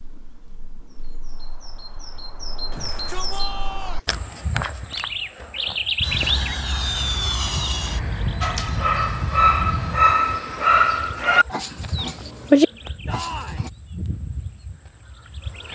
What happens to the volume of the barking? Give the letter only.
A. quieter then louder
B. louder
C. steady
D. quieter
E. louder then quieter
A.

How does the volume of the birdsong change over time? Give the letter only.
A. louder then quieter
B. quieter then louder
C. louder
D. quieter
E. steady
A.